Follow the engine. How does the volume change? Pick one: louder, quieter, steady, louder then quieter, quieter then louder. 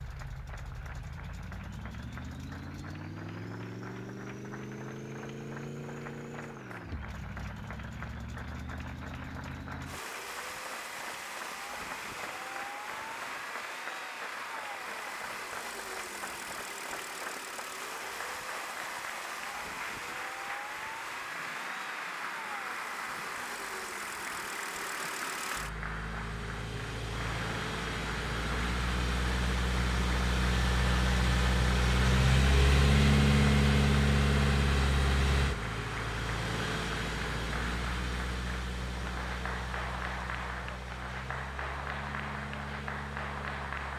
louder then quieter.